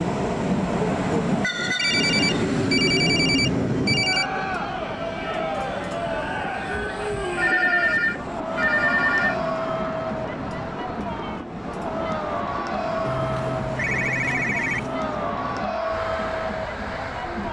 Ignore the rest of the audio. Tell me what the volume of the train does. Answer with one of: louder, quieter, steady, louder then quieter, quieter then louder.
quieter.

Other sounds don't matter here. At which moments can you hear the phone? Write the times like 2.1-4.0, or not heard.
1.8-4.3, 7.3-9.3, 13.1-15.0.